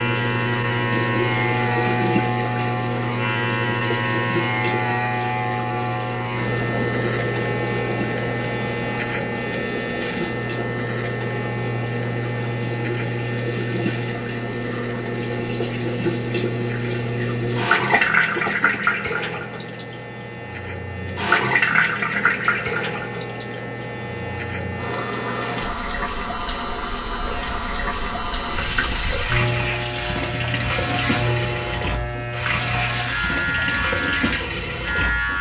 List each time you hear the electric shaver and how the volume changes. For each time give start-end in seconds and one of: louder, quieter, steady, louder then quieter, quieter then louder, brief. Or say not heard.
0.0-35.3 quieter then louder.